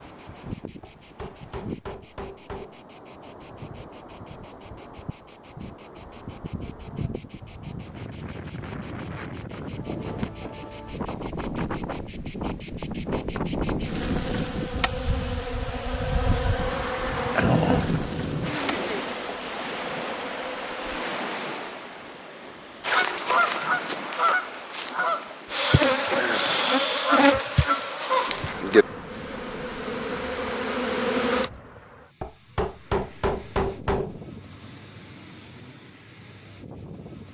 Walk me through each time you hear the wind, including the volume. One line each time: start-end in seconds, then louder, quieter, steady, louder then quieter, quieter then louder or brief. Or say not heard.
0.0-37.2 louder then quieter.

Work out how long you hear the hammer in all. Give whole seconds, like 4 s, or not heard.
4 s.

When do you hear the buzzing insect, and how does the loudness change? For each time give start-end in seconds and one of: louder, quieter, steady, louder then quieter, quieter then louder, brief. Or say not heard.
0.0-21.2 louder
25.5-31.5 quieter then louder.